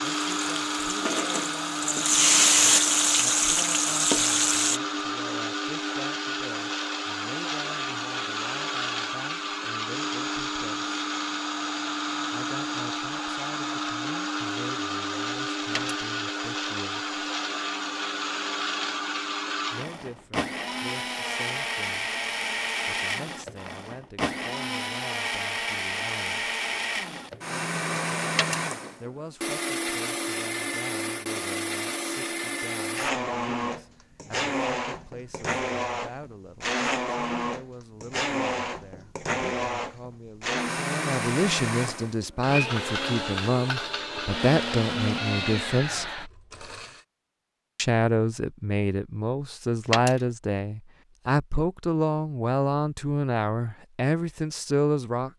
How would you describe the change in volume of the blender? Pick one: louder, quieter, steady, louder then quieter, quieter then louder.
steady.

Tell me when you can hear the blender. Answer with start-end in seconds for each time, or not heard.
0.0-47.0.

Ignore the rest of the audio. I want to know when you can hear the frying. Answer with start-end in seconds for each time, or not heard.
0.0-4.8.